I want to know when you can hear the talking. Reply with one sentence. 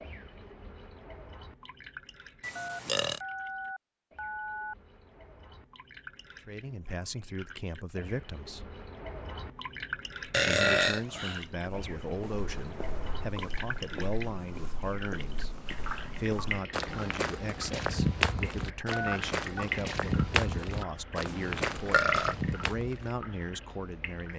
You can hear the talking from 6.5 to 8.8 s and from 10.4 to 24.3 s.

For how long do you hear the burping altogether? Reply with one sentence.
The burping can be heard for 3 seconds in total.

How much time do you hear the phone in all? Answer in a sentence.
The phone can be heard for 3 seconds in total.